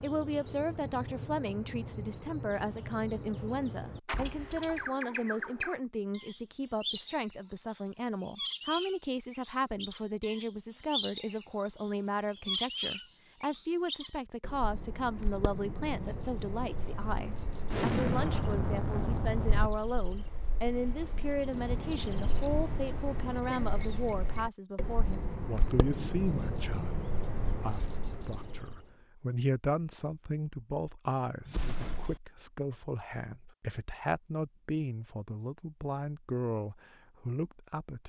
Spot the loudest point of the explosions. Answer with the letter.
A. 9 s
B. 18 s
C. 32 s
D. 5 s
B.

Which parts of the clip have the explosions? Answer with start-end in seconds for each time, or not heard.
4.0-4.9, 17.7-19.7, 31.4-32.1.